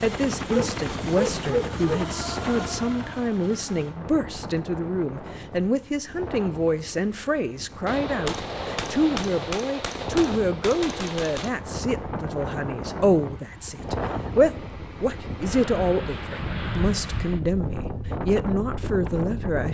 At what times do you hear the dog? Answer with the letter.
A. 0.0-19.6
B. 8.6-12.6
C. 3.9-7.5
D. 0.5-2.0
D.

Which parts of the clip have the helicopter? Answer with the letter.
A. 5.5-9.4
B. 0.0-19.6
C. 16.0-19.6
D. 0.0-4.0
D.